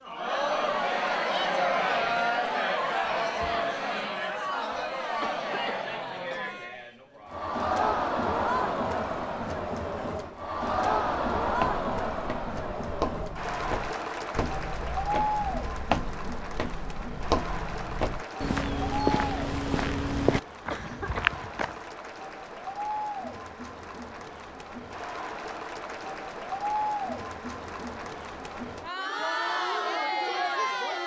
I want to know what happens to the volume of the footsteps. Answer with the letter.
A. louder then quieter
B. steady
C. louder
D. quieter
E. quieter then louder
C.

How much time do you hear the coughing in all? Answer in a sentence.
The coughing can be heard for 2 seconds in total.